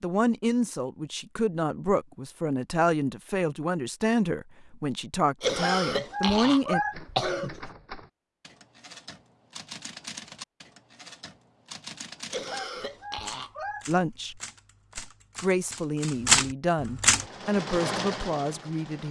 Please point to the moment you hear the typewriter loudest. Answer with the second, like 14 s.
16 s.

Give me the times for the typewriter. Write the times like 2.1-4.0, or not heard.
6.9-17.2.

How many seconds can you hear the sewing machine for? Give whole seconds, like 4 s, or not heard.
2 s.